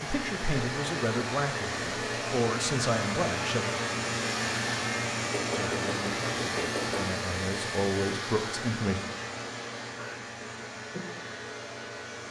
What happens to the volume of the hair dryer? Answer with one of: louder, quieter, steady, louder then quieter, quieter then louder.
quieter.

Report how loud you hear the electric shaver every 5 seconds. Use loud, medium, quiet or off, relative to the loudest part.
loud, loud, medium.